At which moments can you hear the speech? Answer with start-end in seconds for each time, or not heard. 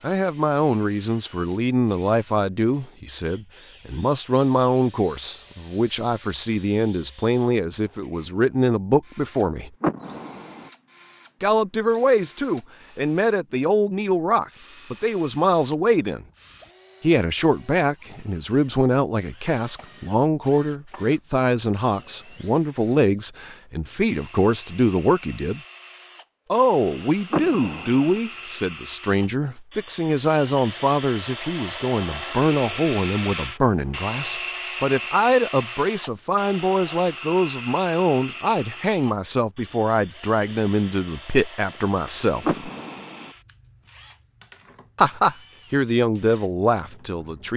0.0-9.7, 11.4-16.2, 17.0-25.6, 26.5-42.7, 45.0-47.5.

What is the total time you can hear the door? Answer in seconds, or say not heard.
3 s.